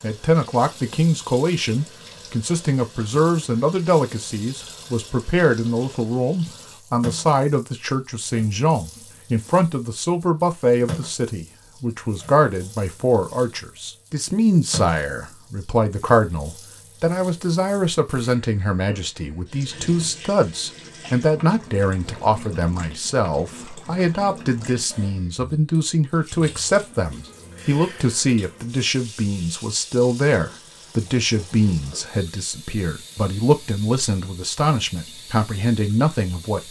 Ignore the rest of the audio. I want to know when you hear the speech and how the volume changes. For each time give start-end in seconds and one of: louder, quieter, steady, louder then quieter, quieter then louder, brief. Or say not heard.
0.0-36.6 steady.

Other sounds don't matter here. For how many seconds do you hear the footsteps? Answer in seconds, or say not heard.
not heard.